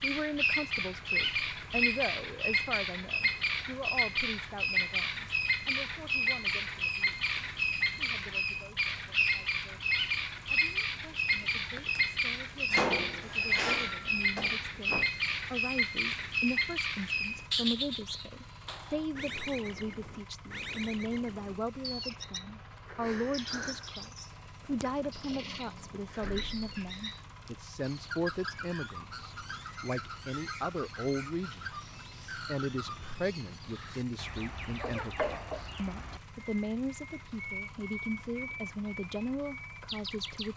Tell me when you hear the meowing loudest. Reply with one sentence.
The volume of the meowing peaks at 35 seconds.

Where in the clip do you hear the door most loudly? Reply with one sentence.
The loudest moment of the door is at 13 seconds.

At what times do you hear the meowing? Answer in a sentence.
You can hear the meowing from 11.4 to 12.1 s and from 34.8 to 35.6 s.